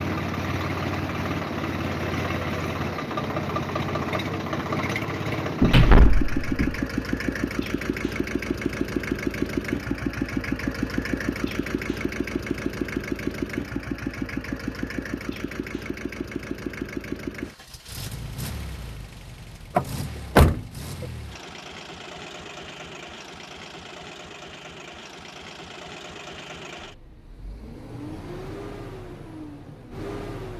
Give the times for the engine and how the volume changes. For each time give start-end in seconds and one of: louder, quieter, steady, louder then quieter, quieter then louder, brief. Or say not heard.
0.0-30.5 quieter.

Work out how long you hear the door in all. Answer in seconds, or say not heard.
2 s.